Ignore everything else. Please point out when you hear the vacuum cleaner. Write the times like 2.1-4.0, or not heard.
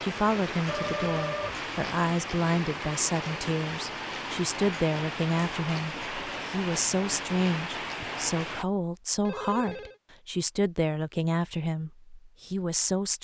not heard.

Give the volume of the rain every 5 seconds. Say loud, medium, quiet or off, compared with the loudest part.
loud, loud, off.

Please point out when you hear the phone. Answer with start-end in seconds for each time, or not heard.
0.7-1.6, 9.2-9.9.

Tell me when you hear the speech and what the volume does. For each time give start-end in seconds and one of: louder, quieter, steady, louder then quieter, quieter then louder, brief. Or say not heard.
0.0-13.2 steady.